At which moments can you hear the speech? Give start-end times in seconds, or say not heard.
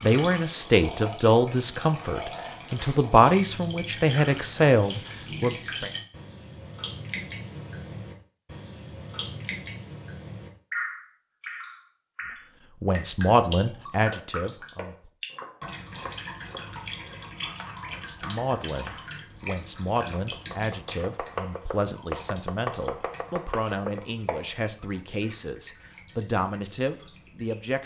0.0-5.9, 12.8-15.1, 17.9-27.8.